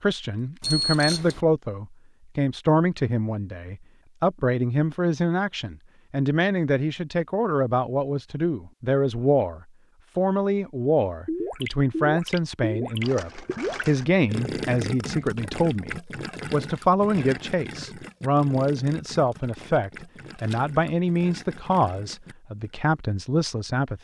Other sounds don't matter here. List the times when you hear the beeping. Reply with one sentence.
The beeping can be heard from 0.6 to 1.4 s.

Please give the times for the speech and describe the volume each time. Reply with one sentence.
The speech can be heard from 0.0 to 23.9 s, at a steady volume.